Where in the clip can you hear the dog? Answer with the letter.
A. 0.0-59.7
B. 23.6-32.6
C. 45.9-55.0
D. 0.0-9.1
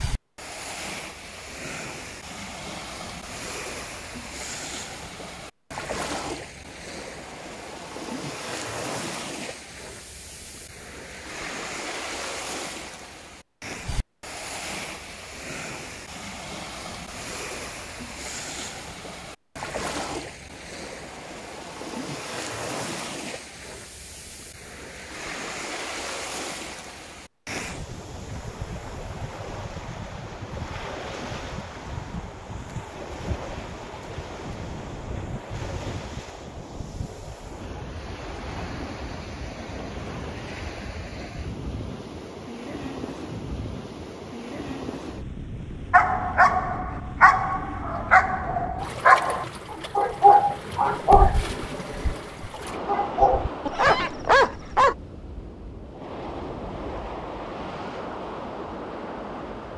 C.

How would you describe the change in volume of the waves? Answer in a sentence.
The loudness of the waves stays about the same.